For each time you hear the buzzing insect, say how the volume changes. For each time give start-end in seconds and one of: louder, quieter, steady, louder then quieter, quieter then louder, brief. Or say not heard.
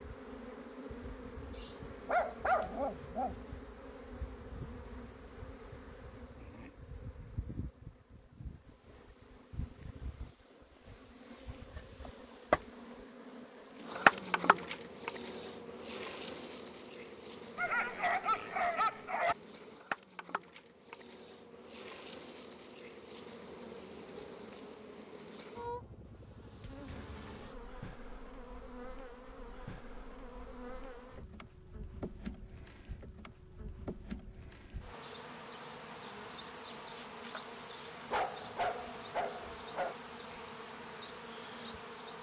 0.0-42.1 louder then quieter.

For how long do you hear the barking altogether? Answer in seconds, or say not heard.
5 s.